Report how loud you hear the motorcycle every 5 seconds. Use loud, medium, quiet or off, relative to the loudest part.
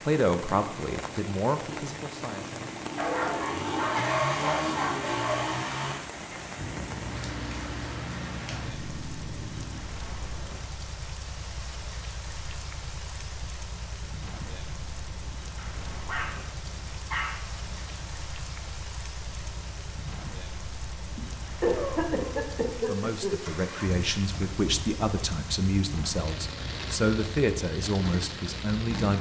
loud, loud, quiet, quiet, medium, medium.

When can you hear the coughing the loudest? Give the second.
22 s.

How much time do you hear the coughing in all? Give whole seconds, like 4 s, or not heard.
2 s.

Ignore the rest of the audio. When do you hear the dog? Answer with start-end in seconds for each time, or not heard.
3.0-5.5, 15.6-18.1.